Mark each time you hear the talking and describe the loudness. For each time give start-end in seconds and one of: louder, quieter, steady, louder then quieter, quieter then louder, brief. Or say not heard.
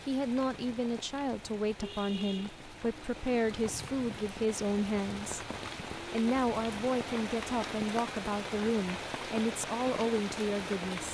0.1-11.0 steady.